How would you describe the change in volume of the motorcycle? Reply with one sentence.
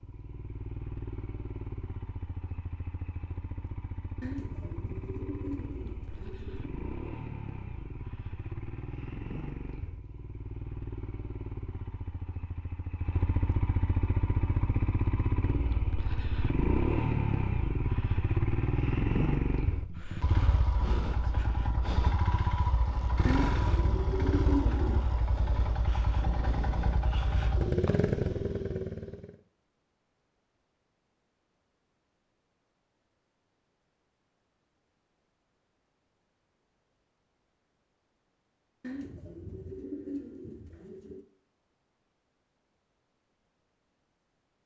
The loudness of the motorcycle goes up.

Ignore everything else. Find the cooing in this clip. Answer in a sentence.
The cooing can be heard from 4.2 to 6.8 s, from 23.2 to 25.1 s and from 38.8 to 41.2 s.